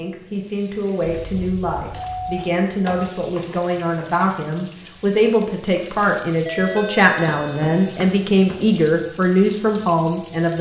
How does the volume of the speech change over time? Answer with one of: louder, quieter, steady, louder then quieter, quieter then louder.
louder.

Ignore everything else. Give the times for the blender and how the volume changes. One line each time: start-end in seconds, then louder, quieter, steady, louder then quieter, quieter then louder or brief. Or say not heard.
not heard.